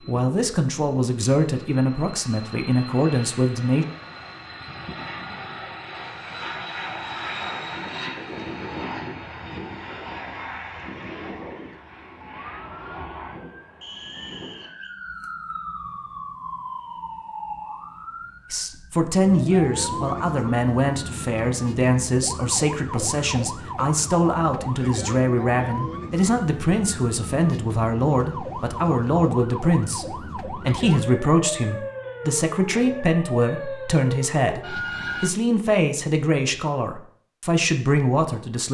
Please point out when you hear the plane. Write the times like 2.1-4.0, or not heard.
0.0-14.7.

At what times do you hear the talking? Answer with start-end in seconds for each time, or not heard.
0.1-3.9, 18.5-38.6.